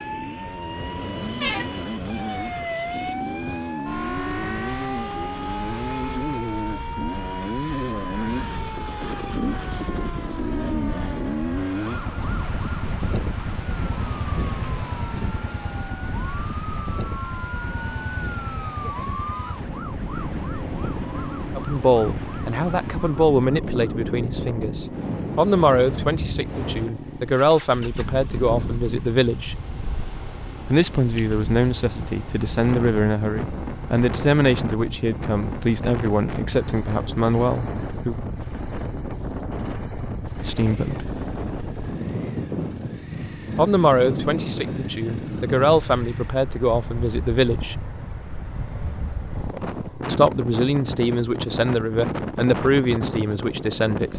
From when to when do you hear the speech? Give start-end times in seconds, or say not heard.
21.6-29.6, 30.7-38.1, 40.4-41.1, 43.5-47.8, 50.0-54.1.